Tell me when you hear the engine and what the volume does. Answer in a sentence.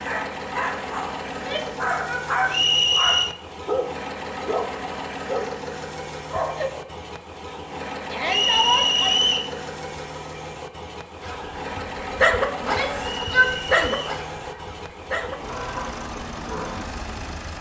The engine can be heard from 0.0 to 17.5 s, at a steady volume.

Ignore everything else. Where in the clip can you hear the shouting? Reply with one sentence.
You can hear the shouting from 1.3 to 2.6 s, from 8.1 to 9.2 s and from 12.6 to 14.0 s.